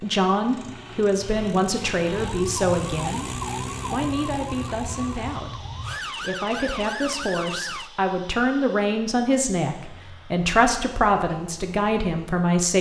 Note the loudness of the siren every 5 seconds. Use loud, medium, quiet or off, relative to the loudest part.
loud, loud, off.